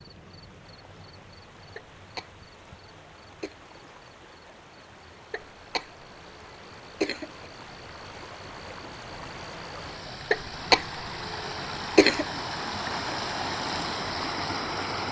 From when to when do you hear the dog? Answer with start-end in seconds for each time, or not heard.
not heard.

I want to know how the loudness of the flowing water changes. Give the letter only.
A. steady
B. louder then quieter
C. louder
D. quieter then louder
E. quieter
C.